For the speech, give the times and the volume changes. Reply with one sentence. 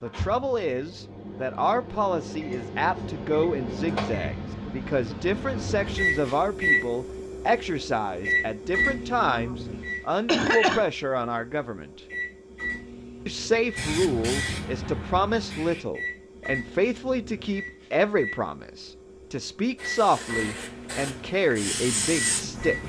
You can hear the speech from 0.0 to 12.0 s, at a steady volume; and from 13.2 to 22.8 s, at a steady volume.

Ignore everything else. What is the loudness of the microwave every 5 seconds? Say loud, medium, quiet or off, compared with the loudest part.
medium, loud, medium, medium, medium.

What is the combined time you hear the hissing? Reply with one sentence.
The hissing can be heard for 5 seconds in total.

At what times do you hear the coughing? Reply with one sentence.
The coughing can be heard from 9.4 to 10.8 s.